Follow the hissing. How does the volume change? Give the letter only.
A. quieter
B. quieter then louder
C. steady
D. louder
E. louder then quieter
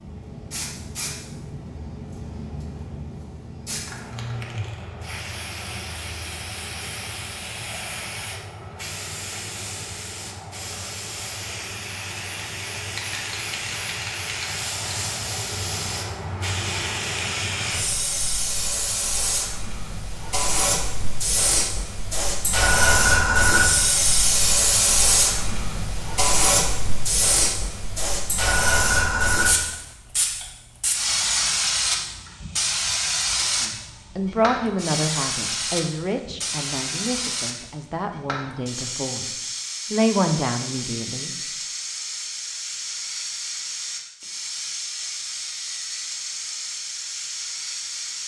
E.